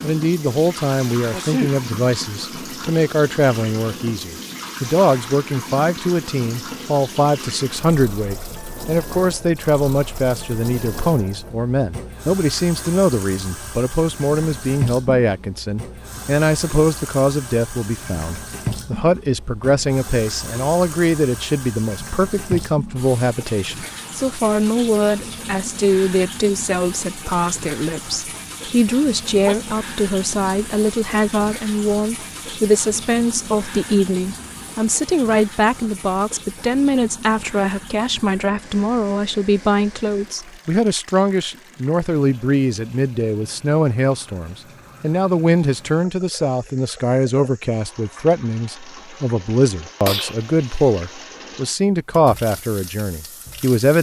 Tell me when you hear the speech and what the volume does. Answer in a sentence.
You can hear the speech from 0.0 to 53.9 s, at a steady volume.